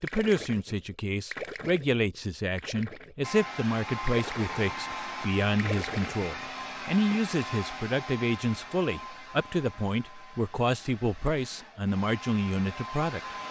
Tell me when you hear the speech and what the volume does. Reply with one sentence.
You can hear the speech from 0.0 to 13.3 s, at a steady volume.